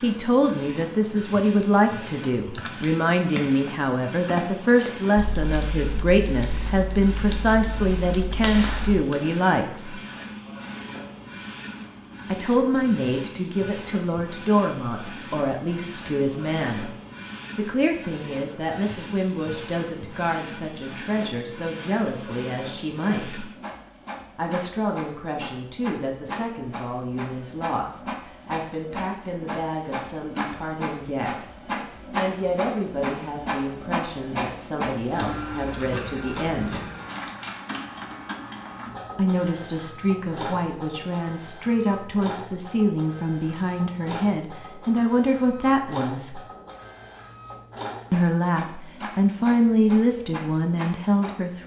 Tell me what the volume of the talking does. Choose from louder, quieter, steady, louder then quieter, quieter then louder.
quieter then louder.